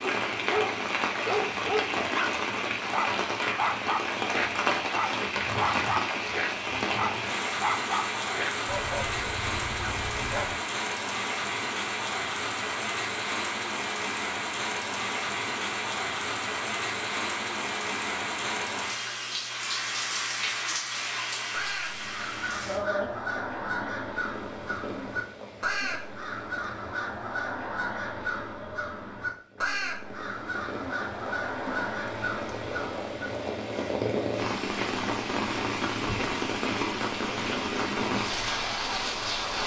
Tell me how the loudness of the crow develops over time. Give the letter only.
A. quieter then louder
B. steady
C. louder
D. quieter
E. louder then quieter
B.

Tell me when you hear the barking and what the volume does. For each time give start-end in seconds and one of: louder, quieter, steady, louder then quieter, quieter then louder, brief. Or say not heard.
0.0-10.6 quieter.